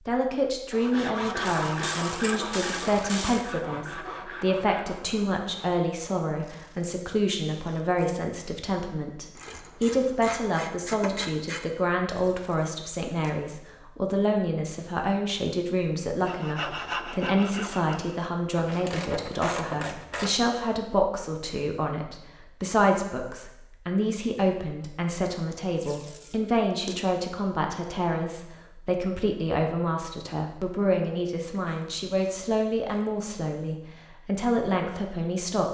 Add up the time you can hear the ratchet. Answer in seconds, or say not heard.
8 s.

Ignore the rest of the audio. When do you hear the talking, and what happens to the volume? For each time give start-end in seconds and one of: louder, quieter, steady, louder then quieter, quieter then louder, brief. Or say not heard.
0.0-35.6 steady.